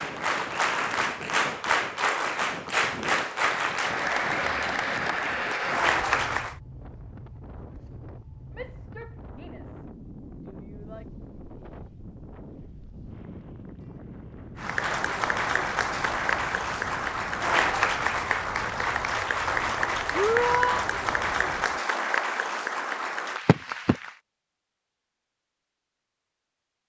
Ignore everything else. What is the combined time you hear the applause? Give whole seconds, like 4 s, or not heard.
16 s.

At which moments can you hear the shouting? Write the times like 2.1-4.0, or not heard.
8.6-9.8, 10.4-11.1, 20.1-20.9.